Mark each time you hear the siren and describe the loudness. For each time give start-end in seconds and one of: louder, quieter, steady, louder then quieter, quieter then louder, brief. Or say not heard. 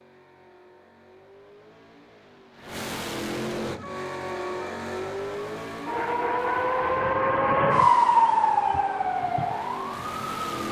3.6-10.6 louder then quieter.